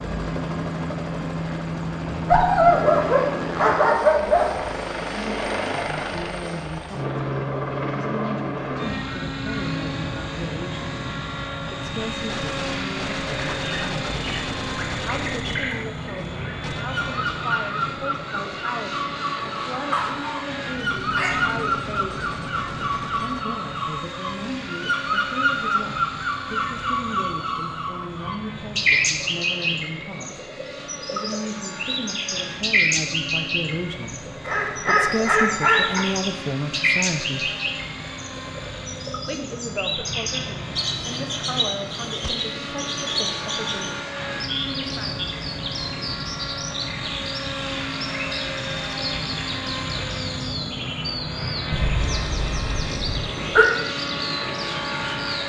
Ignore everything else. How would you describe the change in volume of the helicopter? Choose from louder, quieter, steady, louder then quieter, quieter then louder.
quieter then louder.